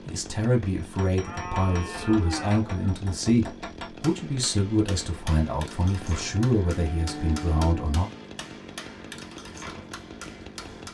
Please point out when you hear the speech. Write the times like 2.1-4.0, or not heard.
0.1-8.1.